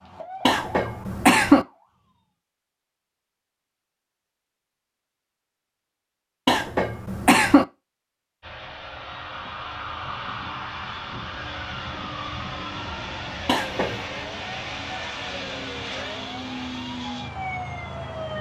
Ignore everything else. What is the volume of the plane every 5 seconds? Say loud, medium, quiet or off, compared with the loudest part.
off, medium, loud, loud.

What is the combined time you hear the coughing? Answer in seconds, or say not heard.
3 s.